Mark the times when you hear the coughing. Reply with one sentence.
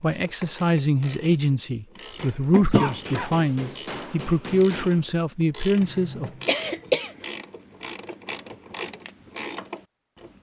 The coughing can be heard from 2.5 to 3.4 s and from 5.8 to 7.2 s.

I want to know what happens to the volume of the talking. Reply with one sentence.
The volume of the talking stays about the same.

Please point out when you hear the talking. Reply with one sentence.
You can hear the talking from 0.0 to 6.3 s.